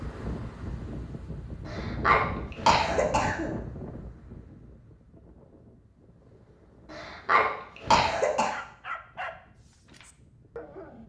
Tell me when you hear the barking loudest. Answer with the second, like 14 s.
9 s.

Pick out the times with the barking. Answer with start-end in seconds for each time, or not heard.
8.5-11.0.